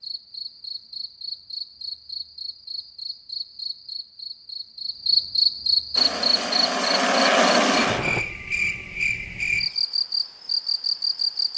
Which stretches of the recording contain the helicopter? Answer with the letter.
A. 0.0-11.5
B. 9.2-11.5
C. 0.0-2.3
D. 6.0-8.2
D.